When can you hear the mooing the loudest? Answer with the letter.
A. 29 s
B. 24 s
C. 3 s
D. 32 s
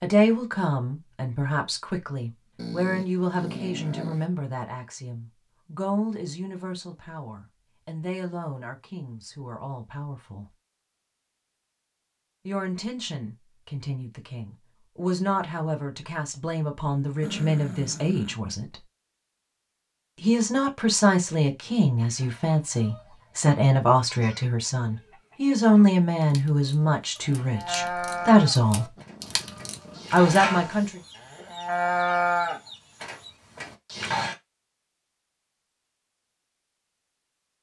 D.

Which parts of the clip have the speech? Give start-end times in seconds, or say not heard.
0.0-10.6, 12.4-18.8, 20.2-28.9, 30.1-31.0.